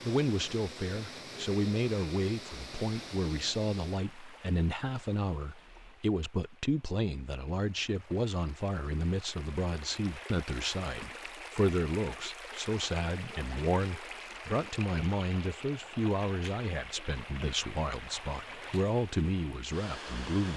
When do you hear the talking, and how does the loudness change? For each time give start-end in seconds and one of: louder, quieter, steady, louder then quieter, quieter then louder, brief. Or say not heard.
0.0-20.5 steady.